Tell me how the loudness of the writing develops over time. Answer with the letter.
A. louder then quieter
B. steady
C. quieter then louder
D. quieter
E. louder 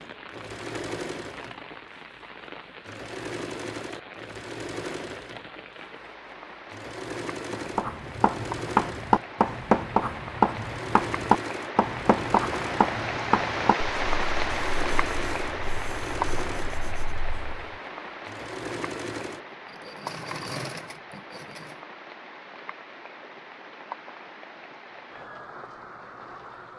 D.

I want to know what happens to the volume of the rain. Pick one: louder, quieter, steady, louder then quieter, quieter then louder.
louder then quieter.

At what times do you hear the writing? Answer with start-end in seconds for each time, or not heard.
7.5-17.8.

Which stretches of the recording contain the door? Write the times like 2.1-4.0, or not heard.
not heard.